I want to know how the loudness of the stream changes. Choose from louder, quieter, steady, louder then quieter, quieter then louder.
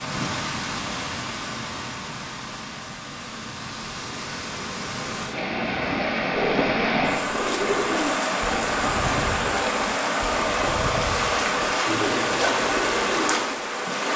louder.